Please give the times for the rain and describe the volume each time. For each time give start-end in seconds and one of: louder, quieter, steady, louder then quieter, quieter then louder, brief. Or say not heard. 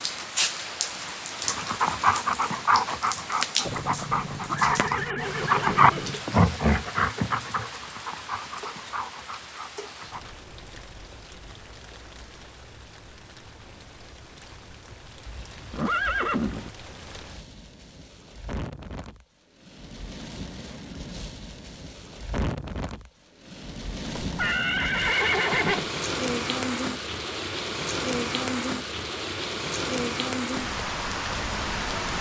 0.0-32.1 quieter then louder.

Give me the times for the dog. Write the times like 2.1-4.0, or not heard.
1.4-10.3.